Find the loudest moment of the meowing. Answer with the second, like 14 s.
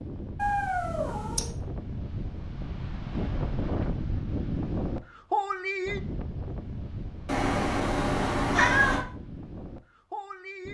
9 s.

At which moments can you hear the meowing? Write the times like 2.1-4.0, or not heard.
0.3-1.5, 7.2-9.1.